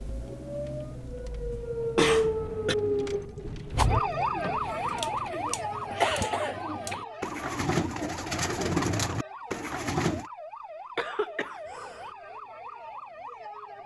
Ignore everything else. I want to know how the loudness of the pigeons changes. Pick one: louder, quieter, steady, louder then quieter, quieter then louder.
louder.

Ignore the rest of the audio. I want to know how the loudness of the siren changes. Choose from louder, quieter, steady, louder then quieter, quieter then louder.
quieter.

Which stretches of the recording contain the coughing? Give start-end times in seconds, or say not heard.
1.5-2.8, 5.0-7.0, 10.9-12.2.